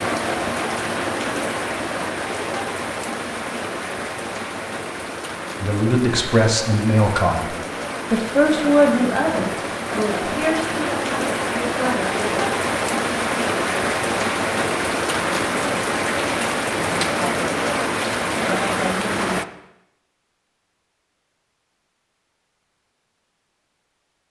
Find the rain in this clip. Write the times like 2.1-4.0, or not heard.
0.0-19.4.